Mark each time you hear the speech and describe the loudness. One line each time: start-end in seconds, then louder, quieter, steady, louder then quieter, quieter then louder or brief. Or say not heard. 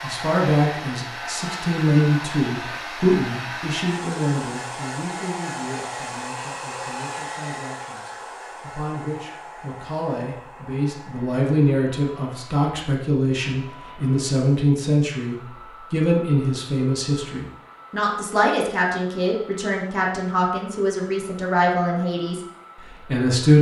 0.0-23.5 quieter then louder.